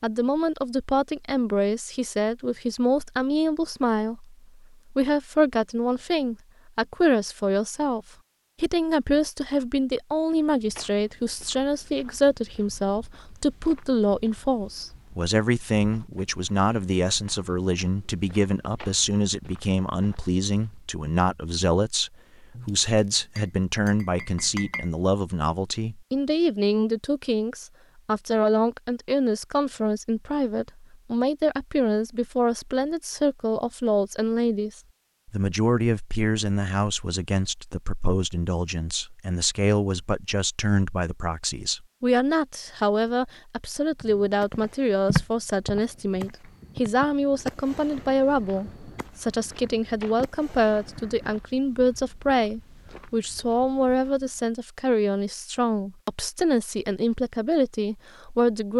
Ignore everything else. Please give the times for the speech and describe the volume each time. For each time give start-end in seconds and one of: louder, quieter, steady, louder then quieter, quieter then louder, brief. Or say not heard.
0.0-58.7 steady.